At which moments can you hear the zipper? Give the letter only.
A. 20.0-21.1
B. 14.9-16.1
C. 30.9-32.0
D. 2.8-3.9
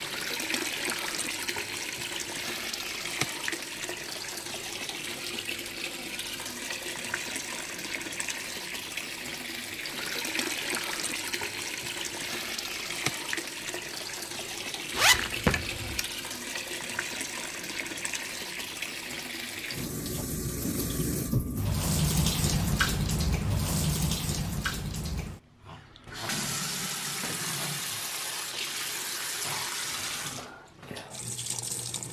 B.